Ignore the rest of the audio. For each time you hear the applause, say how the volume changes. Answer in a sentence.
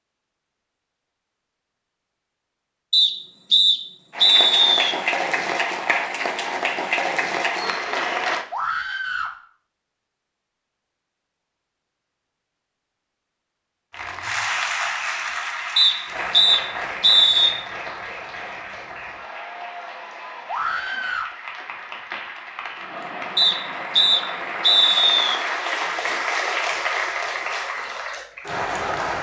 You can hear the applause from 4.1 to 8.4 s, at a steady volume; and from 13.9 to 29.1 s, getting quieter then louder.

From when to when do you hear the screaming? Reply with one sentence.
You can hear the screaming from 8.5 to 9.3 s and from 20.4 to 21.3 s.